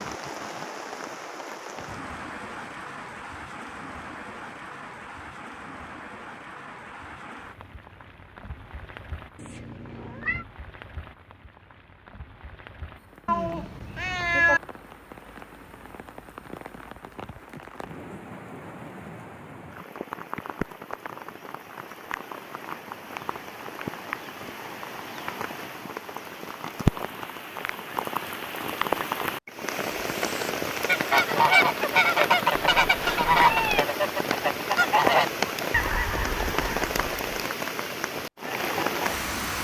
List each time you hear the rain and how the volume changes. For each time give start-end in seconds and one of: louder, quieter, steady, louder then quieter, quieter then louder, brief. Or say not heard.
0.0-39.6 quieter then louder.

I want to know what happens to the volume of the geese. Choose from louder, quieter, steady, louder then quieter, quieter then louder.
quieter.